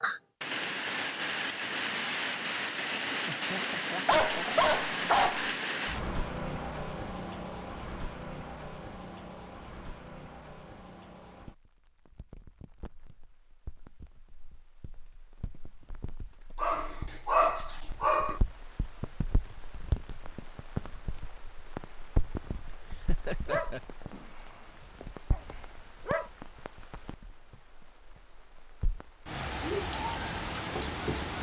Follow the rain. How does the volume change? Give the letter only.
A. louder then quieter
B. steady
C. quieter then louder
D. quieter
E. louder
C.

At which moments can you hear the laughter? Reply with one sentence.
The laughter can be heard from 3.2 to 4.7 s and from 22.7 to 23.8 s.